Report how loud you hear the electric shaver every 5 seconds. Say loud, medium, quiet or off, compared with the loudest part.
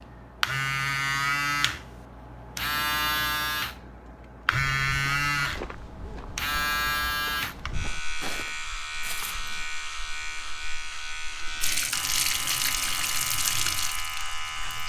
loud, loud, medium.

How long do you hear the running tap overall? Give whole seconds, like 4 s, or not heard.
3 s.